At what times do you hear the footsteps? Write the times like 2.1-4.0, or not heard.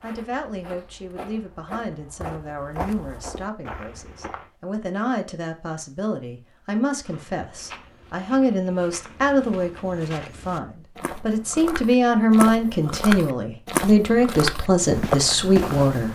0.0-4.5, 7.0-16.0.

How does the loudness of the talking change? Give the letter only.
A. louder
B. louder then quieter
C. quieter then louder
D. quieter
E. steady
A.